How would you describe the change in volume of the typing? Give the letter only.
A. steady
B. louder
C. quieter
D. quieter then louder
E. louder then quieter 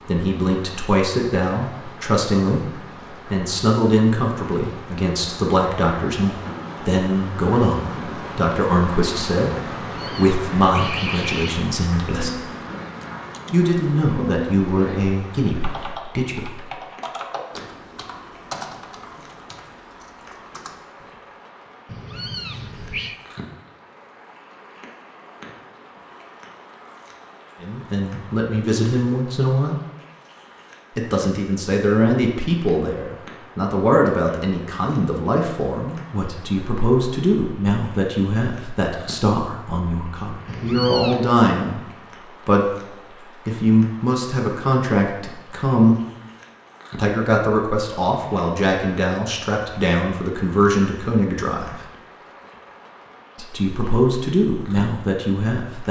E.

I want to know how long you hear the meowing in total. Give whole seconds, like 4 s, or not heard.
4 s.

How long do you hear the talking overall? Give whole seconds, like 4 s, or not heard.
40 s.